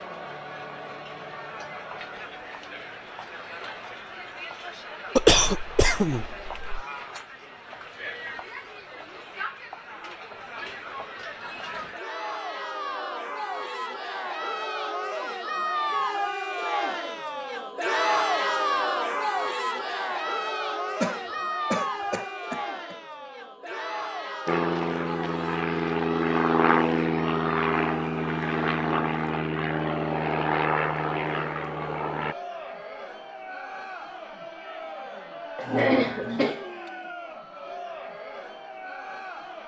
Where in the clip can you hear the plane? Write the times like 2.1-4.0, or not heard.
24.4-32.4.